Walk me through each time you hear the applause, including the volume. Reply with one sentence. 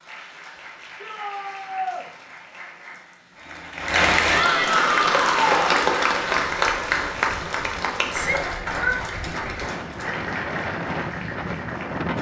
The applause can be heard from 0.0 to 12.1 s, getting louder then quieter.